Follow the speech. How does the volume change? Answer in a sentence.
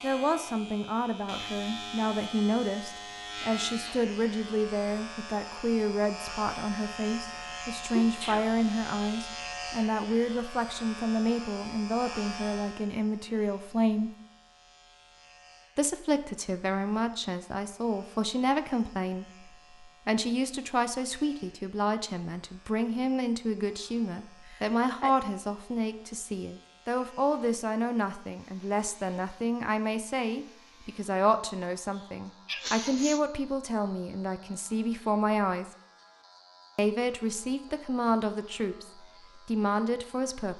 The volume of the speech stays about the same.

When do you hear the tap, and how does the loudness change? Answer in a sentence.
The tap can't be heard in this clip.